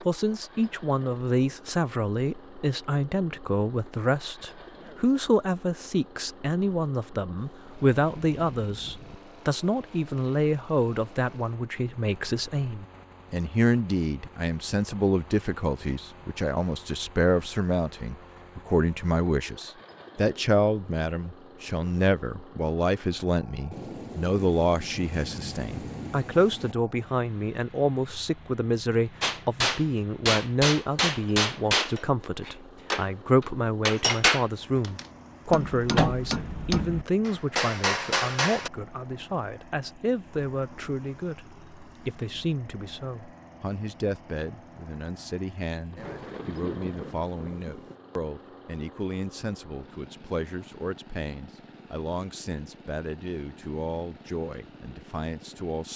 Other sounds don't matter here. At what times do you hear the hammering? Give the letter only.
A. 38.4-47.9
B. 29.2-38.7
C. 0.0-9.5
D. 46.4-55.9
B.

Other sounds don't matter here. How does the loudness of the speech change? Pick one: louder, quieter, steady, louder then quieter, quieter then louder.
quieter.